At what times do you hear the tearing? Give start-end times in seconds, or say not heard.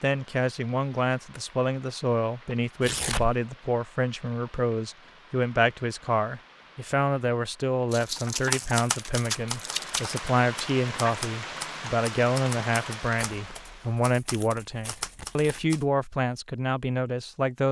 2.8-3.4, 7.9-10.2, 13.2-15.6.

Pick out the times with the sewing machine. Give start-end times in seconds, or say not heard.
not heard.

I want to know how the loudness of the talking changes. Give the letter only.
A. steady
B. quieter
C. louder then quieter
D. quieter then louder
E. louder
A.